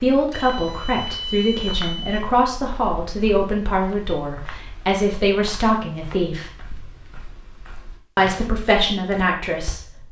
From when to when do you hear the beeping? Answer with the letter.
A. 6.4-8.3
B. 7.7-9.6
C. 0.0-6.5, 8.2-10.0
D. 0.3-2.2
D.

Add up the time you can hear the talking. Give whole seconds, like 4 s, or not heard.
8 s.